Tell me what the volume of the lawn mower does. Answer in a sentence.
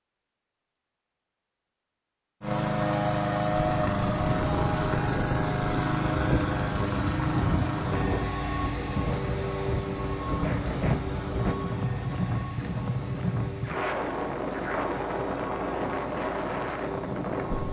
The volume of the lawn mower goes down.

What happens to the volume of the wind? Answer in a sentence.
The volume of the wind stays about the same.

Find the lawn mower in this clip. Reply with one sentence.
The lawn mower can be heard from 2.4 to 17.6 s.